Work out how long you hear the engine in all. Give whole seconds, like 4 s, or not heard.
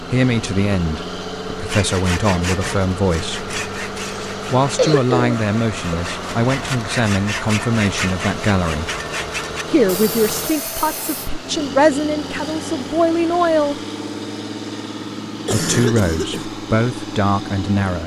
18 s.